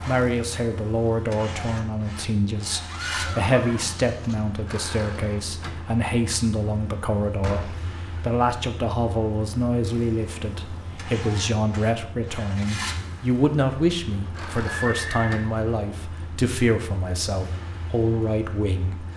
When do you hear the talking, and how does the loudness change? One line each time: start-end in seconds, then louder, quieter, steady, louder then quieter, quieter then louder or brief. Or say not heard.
0.1-19.1 steady.